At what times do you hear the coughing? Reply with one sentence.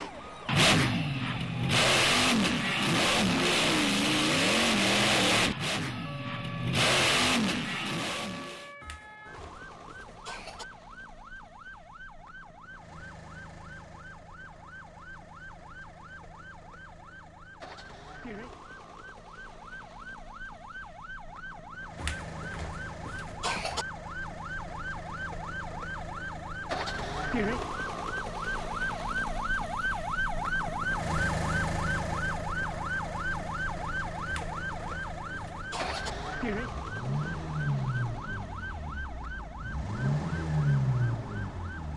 The coughing can be heard from 8.8 to 10.7 s, from 21.9 to 23.9 s and from 34.2 to 36.1 s.